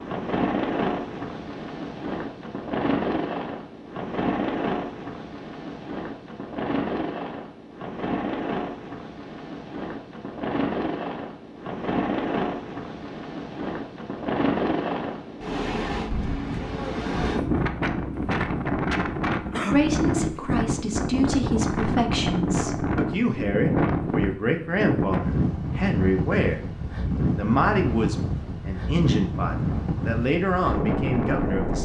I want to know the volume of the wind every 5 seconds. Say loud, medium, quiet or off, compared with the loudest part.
loud, medium, loud, loud, loud, loud, loud.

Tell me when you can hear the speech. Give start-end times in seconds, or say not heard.
19.7-26.6, 27.4-31.7.